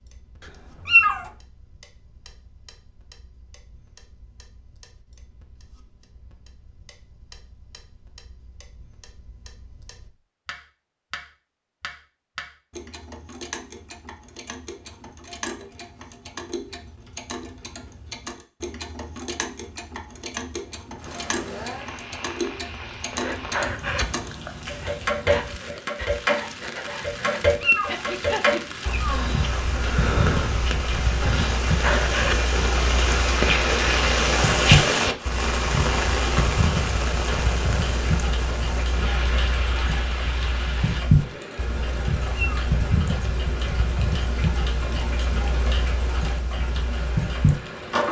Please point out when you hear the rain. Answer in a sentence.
The rain can be heard from 20.9 to 48.0 s.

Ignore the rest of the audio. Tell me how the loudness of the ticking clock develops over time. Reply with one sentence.
The volume of the ticking clock goes up.